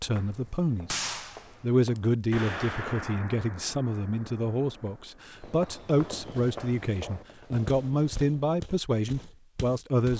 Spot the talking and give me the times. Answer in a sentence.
You can hear the talking from 0.0 to 0.9 s and from 1.6 to 10.1 s.